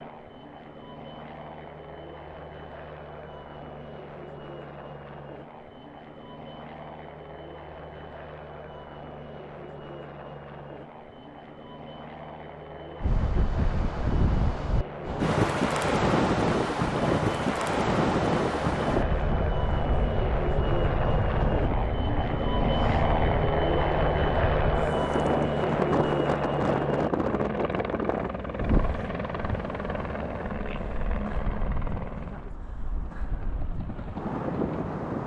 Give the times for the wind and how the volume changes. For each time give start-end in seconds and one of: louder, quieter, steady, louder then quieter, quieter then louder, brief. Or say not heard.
13.0-35.2 quieter.